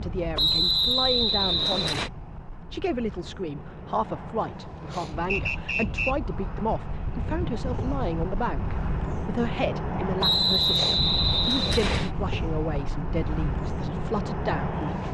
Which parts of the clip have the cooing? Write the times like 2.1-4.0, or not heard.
not heard.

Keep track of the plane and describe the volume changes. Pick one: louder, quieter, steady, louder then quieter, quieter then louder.
louder.